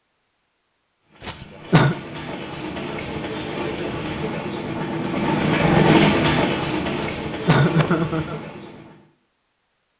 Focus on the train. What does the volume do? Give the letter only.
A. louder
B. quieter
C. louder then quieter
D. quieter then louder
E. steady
C.